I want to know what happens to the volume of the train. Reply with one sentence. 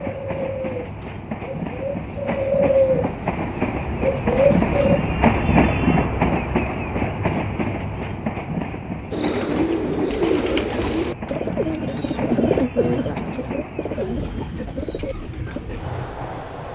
The volume of the train goes up, then down.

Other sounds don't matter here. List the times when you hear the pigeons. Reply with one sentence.
The pigeons can be heard from 0.0 to 5.0 s and from 9.1 to 15.6 s.